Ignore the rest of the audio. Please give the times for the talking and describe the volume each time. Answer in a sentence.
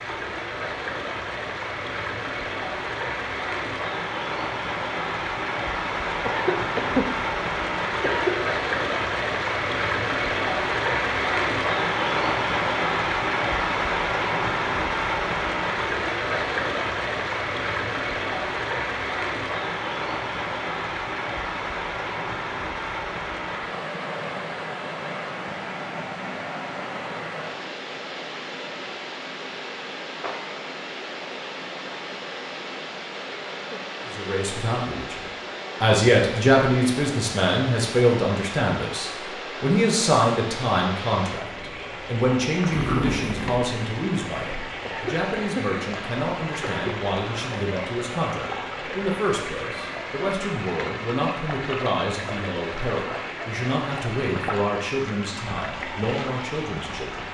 The talking can be heard from 34.1 to 57.2 s, getting quieter.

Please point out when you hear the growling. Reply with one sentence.
You can hear the growling from 42.7 to 43.6 s.